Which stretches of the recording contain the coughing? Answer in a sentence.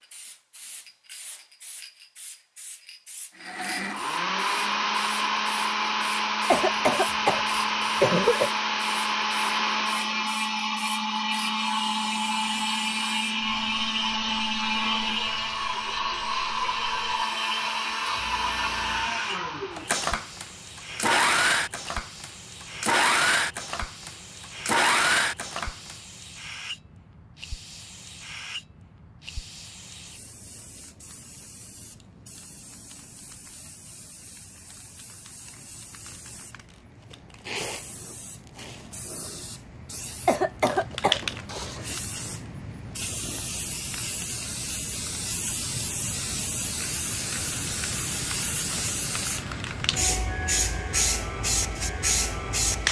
The coughing can be heard from 6.5 to 8.5 s and from 40.2 to 41.2 s.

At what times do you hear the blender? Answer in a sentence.
The blender can be heard from 3.4 to 25.9 s and from 46.9 to 52.8 s.